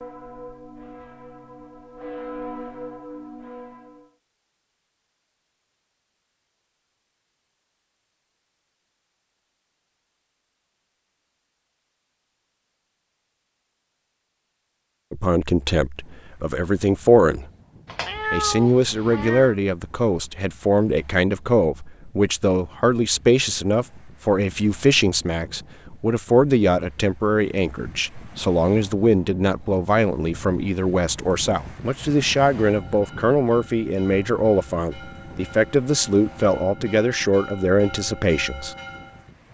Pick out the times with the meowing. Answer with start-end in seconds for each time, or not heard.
17.9-19.6.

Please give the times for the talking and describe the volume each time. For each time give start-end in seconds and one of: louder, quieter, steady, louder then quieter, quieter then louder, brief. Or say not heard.
15.1-17.5 brief
18.3-38.8 steady.